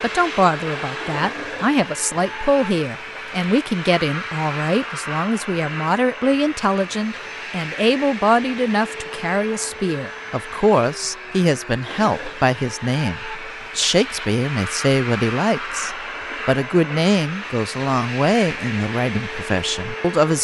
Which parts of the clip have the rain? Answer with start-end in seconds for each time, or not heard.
not heard.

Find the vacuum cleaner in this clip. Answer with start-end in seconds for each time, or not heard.
0.0-20.3.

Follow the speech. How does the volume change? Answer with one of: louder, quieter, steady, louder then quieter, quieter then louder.
steady.